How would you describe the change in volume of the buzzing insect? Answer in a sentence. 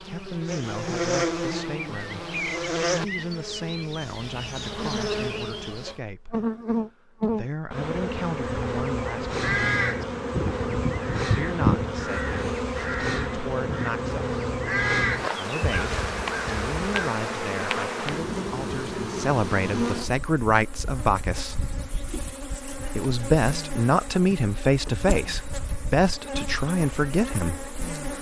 The loudness of the buzzing insect goes down.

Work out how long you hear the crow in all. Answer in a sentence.
You can hear the crow for 8 seconds altogether.